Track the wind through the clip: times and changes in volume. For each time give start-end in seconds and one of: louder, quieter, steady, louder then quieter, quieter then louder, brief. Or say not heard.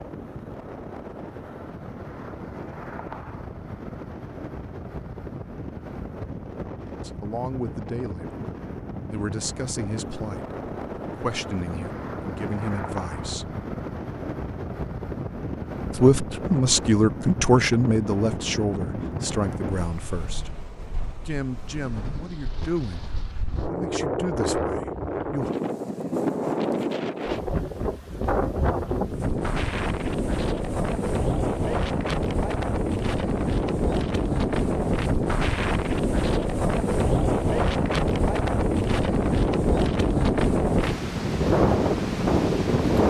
0.0-43.0 louder.